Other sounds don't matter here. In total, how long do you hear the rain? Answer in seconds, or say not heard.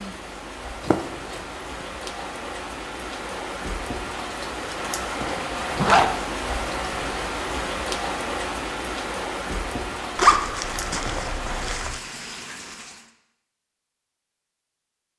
13 s.